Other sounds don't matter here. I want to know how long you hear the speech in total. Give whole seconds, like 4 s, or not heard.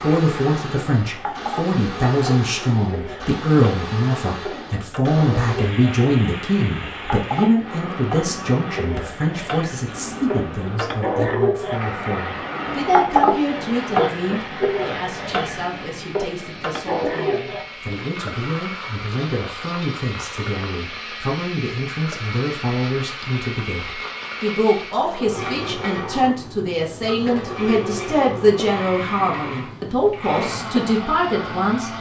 32 s.